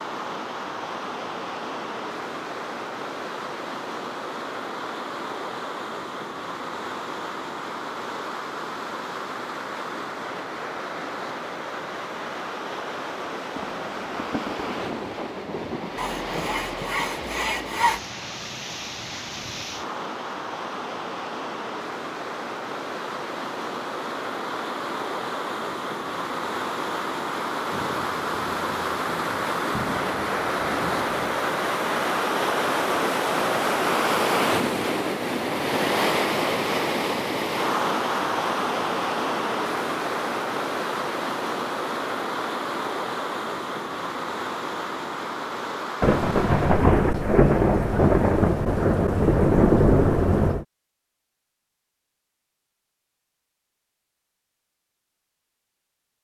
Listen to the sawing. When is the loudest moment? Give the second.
18 s.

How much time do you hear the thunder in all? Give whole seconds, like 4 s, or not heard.
12 s.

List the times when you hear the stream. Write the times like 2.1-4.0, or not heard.
0.0-46.9.